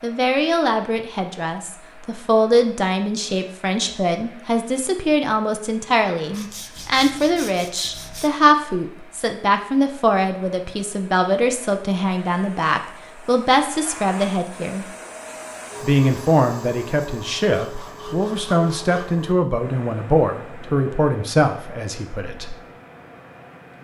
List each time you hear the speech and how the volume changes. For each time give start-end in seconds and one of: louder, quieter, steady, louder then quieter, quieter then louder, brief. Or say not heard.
0.0-14.8 steady
15.8-22.6 steady.